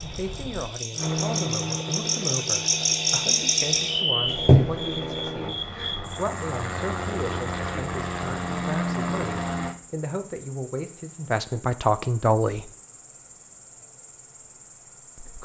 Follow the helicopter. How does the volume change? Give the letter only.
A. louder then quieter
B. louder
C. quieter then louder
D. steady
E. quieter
C.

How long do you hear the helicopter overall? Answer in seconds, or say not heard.
10 s.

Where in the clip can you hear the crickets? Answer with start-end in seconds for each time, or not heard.
0.0-15.3.